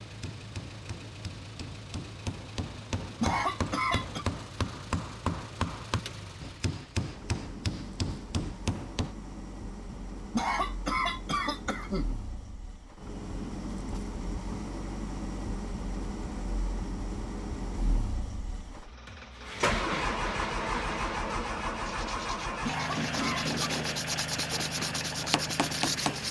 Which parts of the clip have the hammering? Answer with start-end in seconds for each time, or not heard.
0.1-9.2, 22.9-26.2.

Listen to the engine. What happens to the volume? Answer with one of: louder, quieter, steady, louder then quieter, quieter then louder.
louder.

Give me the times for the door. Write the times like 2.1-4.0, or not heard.
not heard.